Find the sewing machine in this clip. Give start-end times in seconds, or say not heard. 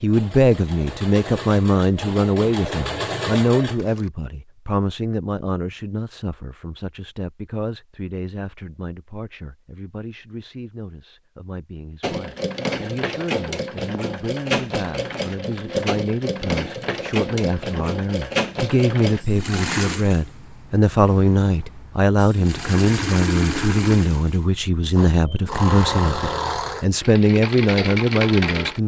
0.0-4.1, 12.0-28.8.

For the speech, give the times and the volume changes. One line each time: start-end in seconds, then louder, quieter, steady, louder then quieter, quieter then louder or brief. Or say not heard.
0.0-28.8 quieter then louder.